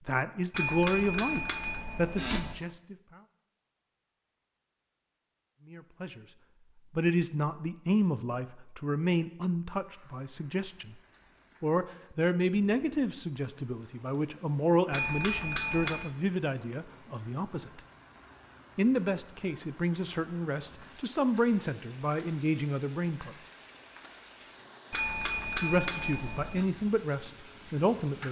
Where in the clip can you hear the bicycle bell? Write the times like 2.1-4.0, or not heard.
0.5-2.5, 14.9-16.1, 24.9-26.6.